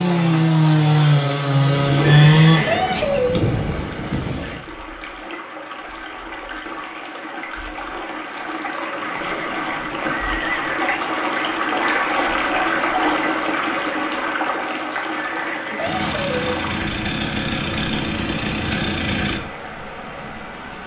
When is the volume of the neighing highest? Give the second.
3 s.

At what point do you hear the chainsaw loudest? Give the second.
2 s.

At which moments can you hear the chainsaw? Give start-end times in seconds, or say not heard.
0.0-4.6, 15.8-19.4.